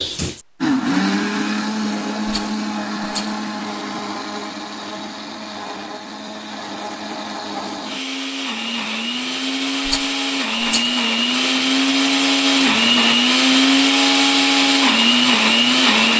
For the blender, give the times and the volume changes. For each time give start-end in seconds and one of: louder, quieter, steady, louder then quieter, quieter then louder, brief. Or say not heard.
0.0-16.1 quieter then louder.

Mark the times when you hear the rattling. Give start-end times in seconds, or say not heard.
2.2-3.5, 9.8-11.0.